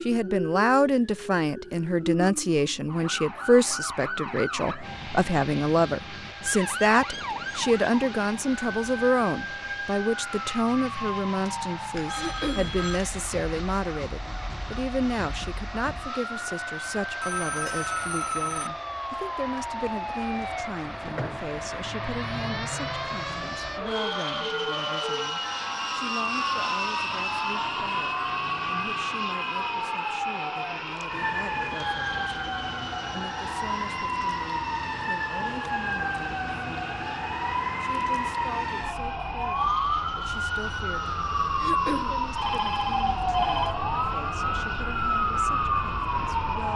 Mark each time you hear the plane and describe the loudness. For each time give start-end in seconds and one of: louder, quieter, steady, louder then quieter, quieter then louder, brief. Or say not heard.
4.8-46.7 louder then quieter.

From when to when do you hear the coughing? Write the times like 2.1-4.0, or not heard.
12.2-12.7, 41.6-42.1.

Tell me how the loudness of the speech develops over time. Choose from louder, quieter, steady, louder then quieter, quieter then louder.
quieter.